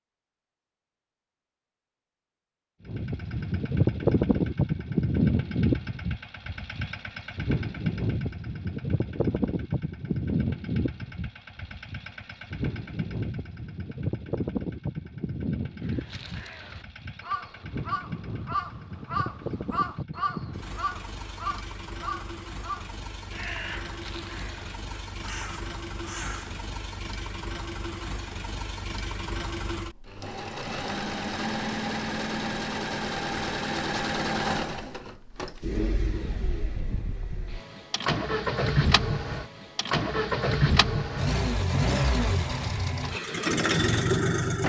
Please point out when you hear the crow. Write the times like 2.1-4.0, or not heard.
15.8-26.6.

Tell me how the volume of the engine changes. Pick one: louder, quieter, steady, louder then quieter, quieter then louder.
quieter then louder.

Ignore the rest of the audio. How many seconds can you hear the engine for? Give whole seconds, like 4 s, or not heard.
42 s.